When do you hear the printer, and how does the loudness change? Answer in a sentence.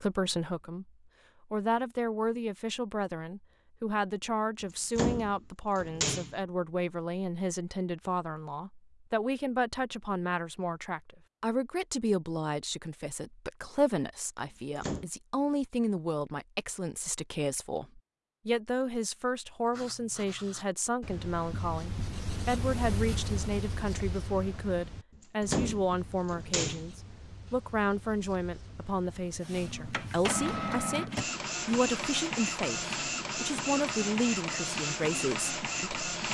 The printer can be heard from 29.4 to 36.2 s, at a steady volume.